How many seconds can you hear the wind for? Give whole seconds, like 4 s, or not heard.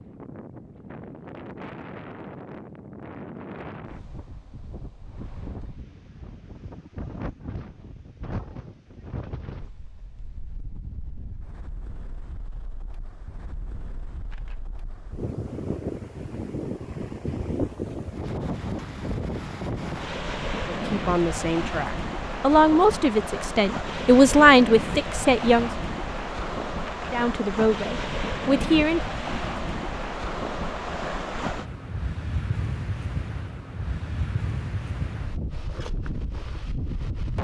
37 s.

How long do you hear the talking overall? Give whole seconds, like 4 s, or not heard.
7 s.